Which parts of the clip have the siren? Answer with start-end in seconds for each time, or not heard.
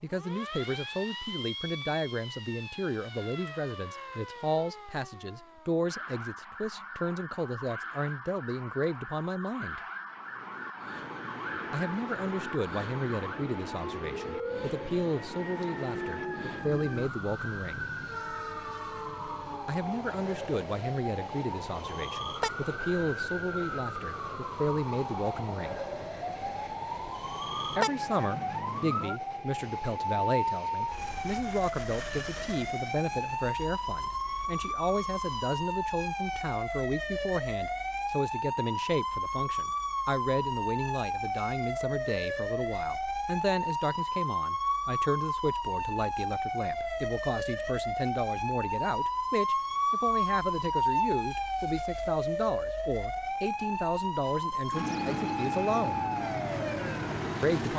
0.1-57.7.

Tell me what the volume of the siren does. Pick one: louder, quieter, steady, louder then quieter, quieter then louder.
louder.